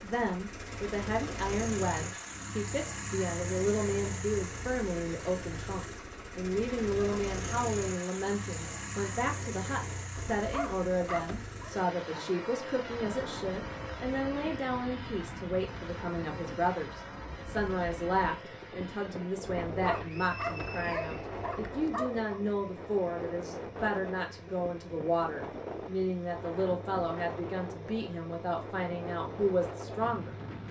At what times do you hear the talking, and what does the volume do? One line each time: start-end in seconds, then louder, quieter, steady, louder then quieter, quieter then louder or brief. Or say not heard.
0.0-30.6 steady.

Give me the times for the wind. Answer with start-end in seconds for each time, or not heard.
12.8-30.6.